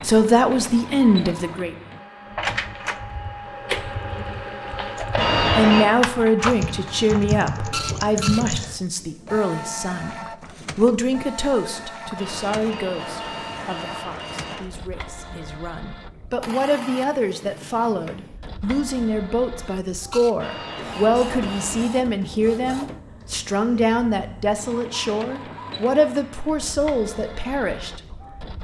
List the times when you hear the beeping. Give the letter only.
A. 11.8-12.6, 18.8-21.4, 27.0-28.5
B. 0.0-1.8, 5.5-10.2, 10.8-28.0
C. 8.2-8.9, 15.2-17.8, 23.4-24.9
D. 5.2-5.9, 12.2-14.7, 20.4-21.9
D.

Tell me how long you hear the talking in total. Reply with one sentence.
The talking can be heard for 24 seconds in total.